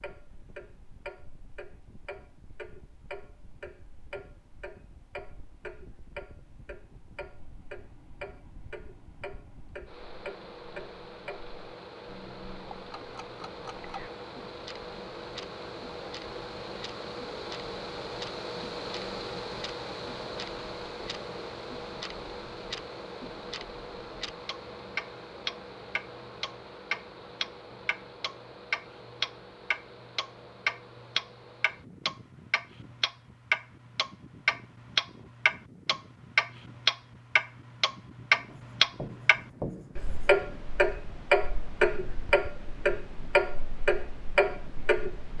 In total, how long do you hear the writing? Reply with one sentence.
The writing can be heard for 2 seconds in total.